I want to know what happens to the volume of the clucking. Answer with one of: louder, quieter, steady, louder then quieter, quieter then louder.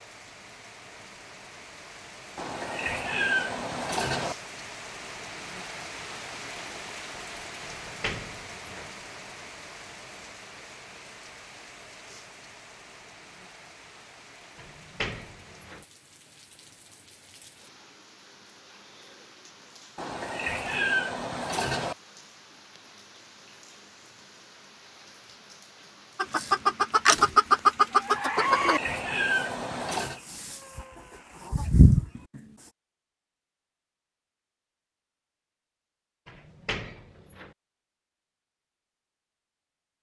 quieter then louder.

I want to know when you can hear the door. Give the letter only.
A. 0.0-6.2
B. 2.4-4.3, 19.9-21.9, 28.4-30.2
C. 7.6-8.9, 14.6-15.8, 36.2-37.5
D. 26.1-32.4
C.